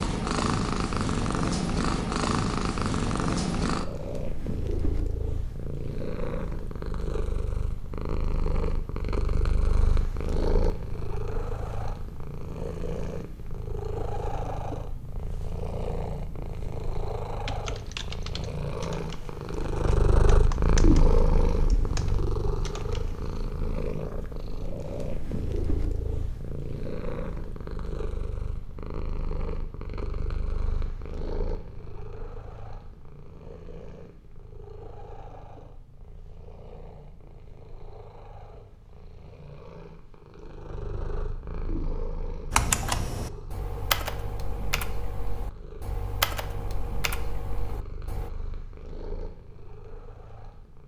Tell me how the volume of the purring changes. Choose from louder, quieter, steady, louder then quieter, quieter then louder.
quieter.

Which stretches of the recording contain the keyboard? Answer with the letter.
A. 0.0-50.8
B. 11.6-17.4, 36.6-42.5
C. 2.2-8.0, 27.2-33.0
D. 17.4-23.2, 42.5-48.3
D.